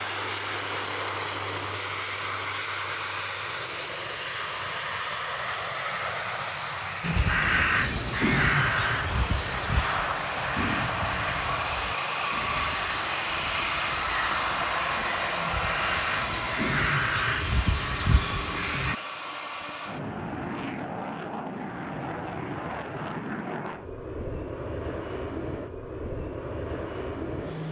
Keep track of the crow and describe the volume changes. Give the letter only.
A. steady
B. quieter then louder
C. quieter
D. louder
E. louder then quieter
B.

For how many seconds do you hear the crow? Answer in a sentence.
You can hear the crow for 12 seconds altogether.